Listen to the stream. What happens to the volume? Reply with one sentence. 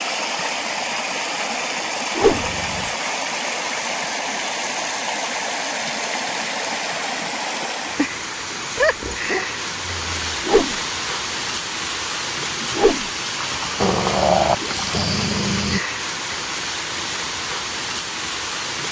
The loudness of the stream stays about the same.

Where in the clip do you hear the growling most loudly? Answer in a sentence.
The loudest moment of the growling is at 14 seconds.